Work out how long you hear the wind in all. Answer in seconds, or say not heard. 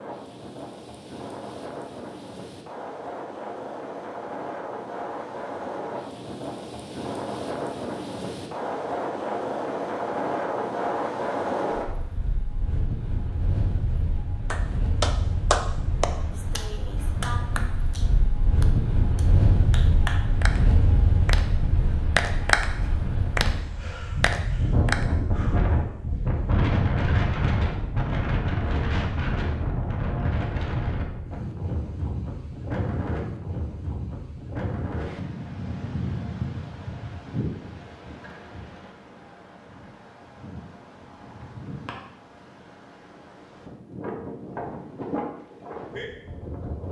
47 s.